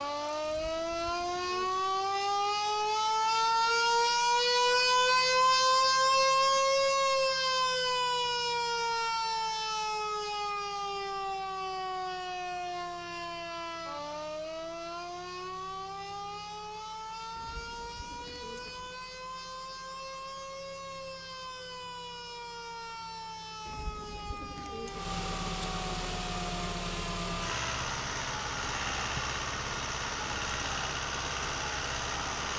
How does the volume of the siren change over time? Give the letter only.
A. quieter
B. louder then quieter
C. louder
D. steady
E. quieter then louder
A.